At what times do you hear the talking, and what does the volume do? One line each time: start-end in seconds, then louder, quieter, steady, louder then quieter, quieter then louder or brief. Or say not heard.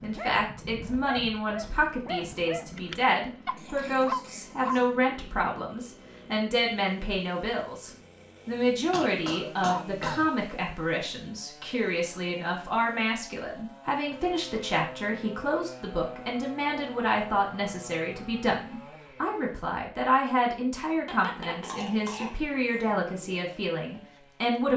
0.0-24.7 steady.